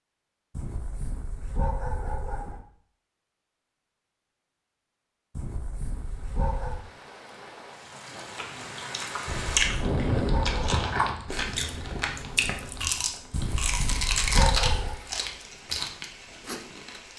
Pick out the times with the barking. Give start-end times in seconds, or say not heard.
0.6-2.6, 5.3-6.8, 9.2-10.8, 13.3-15.0.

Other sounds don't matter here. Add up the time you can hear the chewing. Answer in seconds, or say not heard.
9 s.